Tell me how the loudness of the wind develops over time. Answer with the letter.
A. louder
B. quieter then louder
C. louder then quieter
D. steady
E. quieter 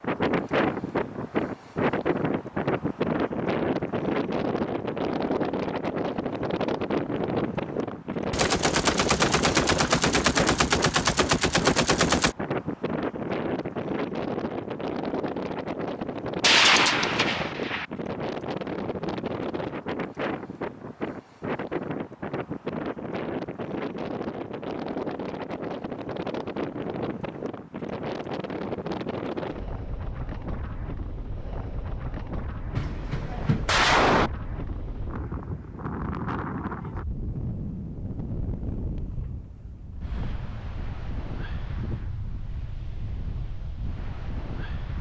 E.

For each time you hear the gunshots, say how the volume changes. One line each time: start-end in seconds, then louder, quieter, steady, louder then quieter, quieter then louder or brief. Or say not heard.
8.3-12.3 steady
16.4-17.9 brief
32.8-34.3 brief.